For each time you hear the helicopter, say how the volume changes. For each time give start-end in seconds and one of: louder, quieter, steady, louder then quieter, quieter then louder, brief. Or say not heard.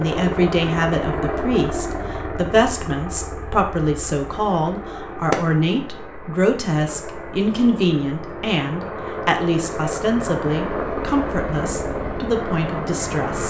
0.0-13.4 quieter then louder.